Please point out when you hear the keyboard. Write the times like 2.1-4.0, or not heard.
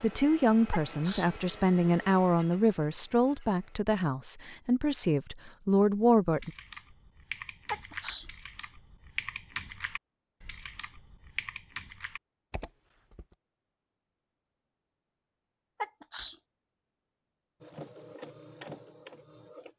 6.3-13.3.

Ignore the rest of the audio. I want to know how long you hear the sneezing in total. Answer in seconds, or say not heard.
2 s.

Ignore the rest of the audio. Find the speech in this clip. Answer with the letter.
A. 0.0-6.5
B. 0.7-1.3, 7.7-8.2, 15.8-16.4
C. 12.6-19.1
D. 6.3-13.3
A.